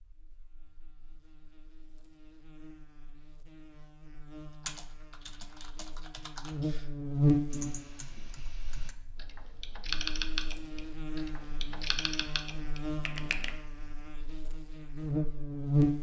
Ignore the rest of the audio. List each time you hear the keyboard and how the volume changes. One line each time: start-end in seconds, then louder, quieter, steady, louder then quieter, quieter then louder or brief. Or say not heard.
4.6-6.9 brief
7.5-13.6 louder then quieter.